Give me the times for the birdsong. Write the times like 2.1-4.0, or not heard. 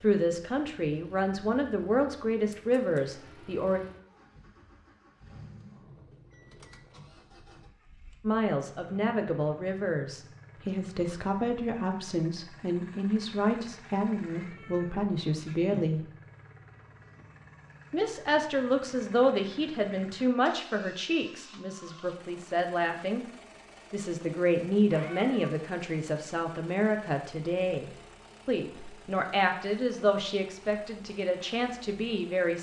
not heard.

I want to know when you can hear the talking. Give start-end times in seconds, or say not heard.
0.0-3.8, 8.2-16.1, 17.9-23.2, 23.9-32.5.